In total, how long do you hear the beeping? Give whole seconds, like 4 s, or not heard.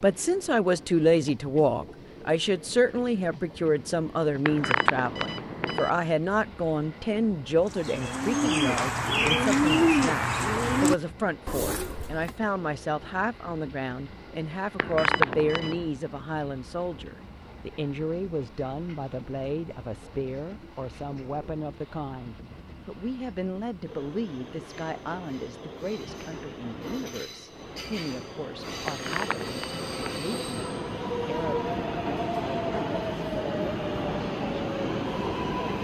4 s.